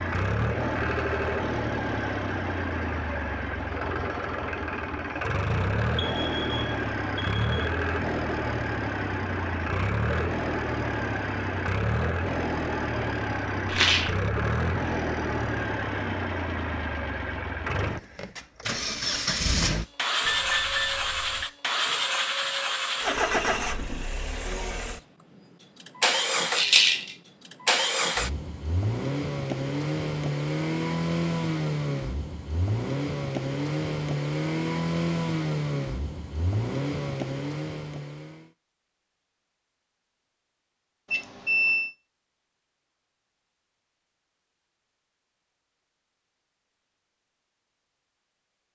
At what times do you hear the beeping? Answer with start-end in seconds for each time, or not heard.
6.0-7.5, 20.2-21.4, 41.1-41.9.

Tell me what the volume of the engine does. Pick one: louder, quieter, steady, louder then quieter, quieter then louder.
steady.